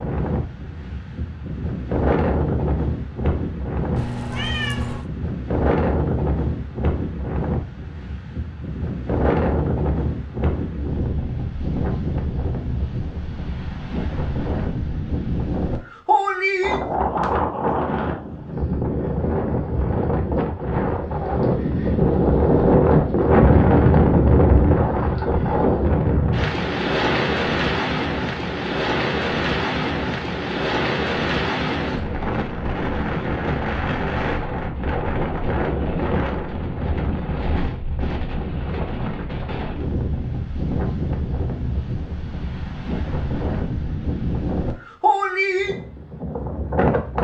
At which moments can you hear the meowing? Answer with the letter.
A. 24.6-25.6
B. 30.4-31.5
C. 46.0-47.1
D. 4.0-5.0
D.